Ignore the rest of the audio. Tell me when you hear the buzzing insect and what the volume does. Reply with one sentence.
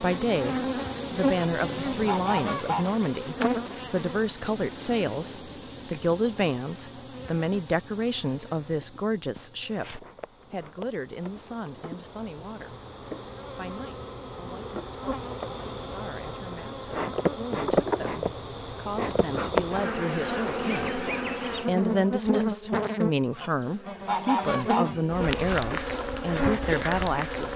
You can hear the buzzing insect from 0.0 to 27.5 s, getting quieter then louder.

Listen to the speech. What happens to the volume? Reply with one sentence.
The loudness of the speech goes down, then up.